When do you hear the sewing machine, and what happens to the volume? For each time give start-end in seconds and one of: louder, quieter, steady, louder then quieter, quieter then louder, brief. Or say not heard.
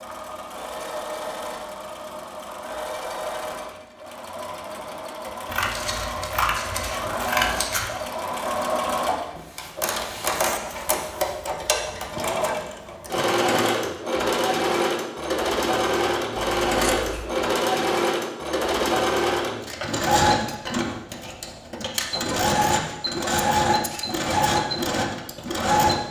0.0-26.0 louder.